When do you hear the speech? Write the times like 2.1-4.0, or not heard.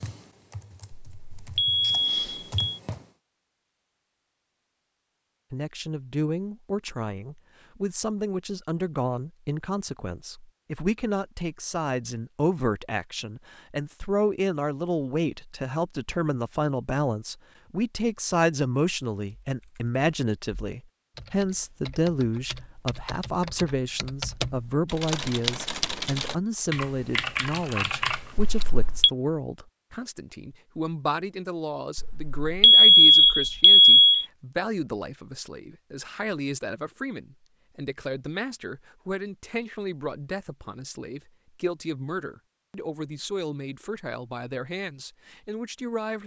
5.5-46.2.